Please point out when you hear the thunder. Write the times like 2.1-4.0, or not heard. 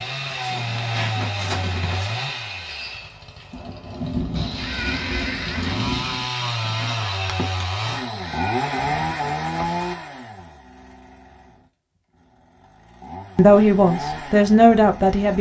3.5-6.3.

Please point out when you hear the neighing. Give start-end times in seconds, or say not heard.
4.3-5.8, 8.0-9.9.